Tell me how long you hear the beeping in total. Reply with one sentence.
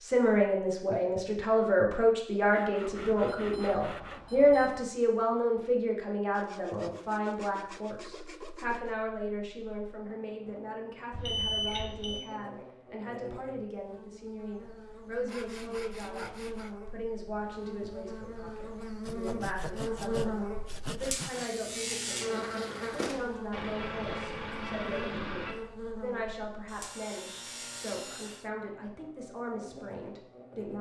You can hear the beeping for 5 seconds altogether.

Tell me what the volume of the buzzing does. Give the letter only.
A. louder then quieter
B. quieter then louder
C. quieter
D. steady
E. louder
A.